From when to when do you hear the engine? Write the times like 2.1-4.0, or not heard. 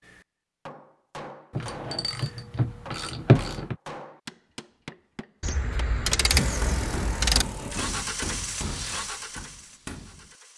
6.2-10.5.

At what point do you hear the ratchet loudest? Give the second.
3 s.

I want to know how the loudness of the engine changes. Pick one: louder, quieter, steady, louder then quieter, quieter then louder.
quieter.